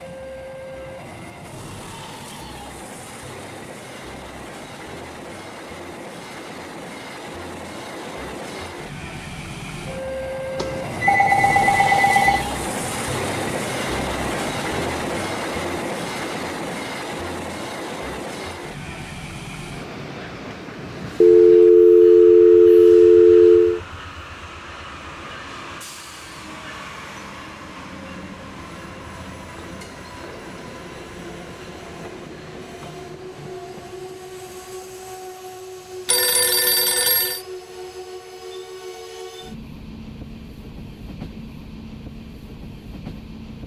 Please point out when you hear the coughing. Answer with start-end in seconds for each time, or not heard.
not heard.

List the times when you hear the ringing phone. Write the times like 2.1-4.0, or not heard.
10.6-12.4, 21.2-23.8, 36.0-37.4.